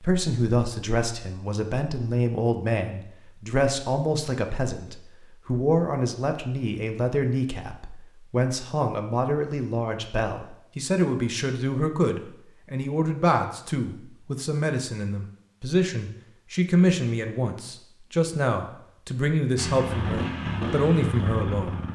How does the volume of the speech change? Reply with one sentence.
The loudness of the speech stays about the same.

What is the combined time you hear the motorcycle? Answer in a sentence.
The motorcycle can be heard for 2 seconds in total.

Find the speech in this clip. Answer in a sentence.
The speech can be heard from 0.0 to 21.9 s.